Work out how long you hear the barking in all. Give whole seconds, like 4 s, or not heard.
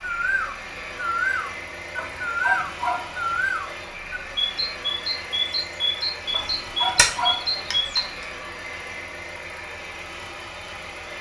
3 s.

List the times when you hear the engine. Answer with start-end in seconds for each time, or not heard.
0.0-11.1.